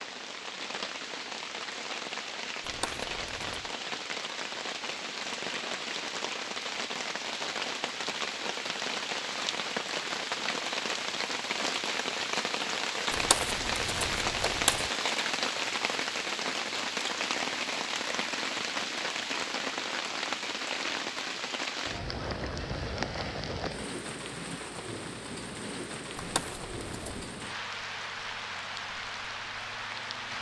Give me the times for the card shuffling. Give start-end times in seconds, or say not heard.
2.6-3.6, 13.1-14.9, 26.1-27.2.